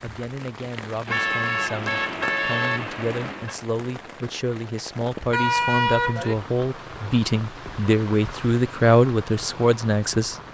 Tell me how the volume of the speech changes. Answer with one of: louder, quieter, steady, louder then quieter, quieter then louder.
louder.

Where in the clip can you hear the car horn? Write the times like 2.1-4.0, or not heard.
1.1-3.5, 5.3-6.3.